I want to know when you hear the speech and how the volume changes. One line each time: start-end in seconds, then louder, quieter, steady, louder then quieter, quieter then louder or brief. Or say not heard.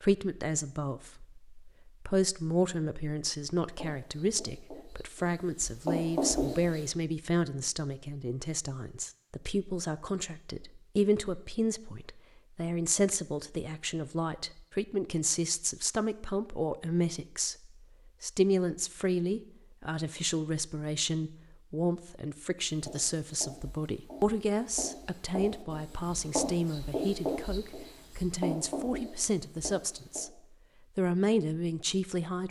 0.0-32.4 steady.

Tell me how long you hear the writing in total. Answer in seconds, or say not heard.
11 s.